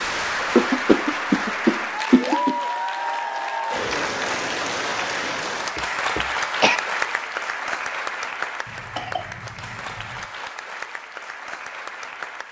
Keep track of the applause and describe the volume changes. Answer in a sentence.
The loudness of the applause goes down.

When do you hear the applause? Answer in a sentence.
You can hear the applause from 0.0 to 12.4 s.